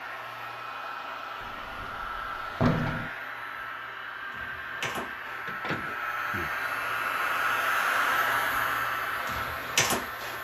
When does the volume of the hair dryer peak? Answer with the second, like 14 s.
8 s.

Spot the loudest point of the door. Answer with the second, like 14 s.
3 s.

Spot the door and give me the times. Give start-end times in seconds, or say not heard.
1.4-3.1, 5.5-6.5.